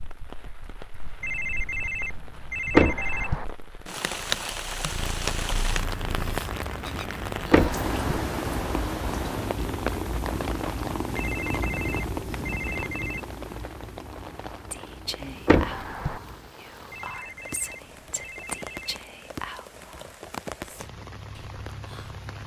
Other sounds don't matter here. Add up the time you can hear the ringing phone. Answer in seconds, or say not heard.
6 s.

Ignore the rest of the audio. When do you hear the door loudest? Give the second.
3 s.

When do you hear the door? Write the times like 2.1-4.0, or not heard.
2.8-3.5, 7.5-8.2, 15.4-16.2.